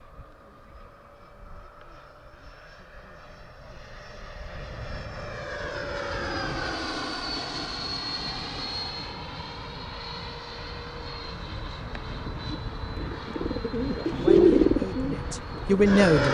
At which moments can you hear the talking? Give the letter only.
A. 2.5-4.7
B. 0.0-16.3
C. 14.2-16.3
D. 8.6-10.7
C.